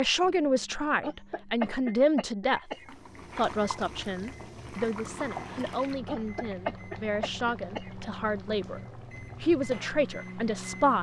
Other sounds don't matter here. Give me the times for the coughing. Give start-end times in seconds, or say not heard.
1.0-2.9, 6.0-7.9.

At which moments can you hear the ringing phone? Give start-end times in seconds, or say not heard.
not heard.